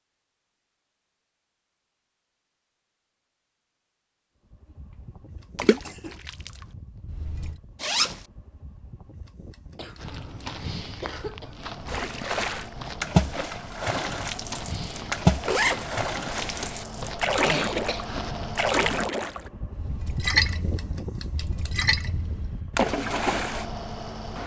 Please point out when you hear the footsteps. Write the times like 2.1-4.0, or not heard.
9.9-18.6.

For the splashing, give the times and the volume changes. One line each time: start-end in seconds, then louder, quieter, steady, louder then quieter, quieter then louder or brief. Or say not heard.
5.5-7.5 brief
11.8-23.6 steady.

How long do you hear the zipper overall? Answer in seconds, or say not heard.
2 s.